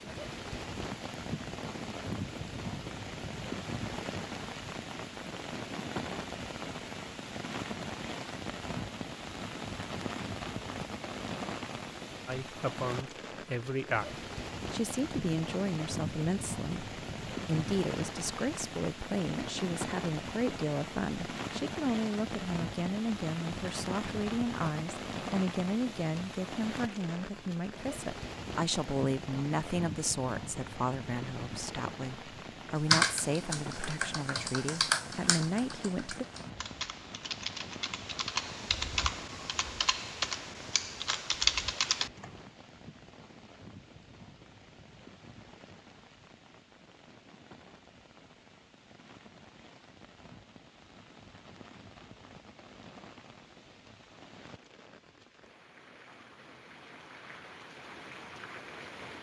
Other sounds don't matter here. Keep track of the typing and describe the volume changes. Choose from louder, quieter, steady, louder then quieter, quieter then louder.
quieter then louder.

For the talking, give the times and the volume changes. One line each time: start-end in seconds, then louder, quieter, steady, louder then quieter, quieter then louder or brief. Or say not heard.
12.2-14.1 brief
14.7-36.2 steady.